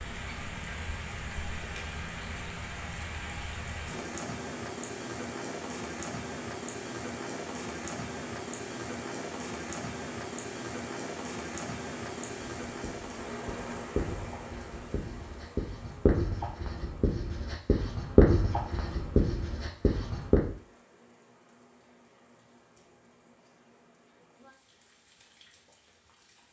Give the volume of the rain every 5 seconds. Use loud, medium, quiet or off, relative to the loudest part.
loud, loud, loud, quiet, quiet, quiet.